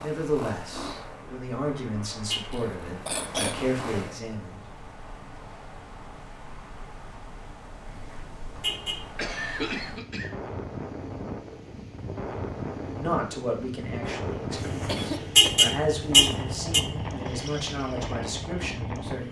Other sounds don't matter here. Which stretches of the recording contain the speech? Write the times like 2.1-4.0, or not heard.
0.0-4.7, 13.0-19.2.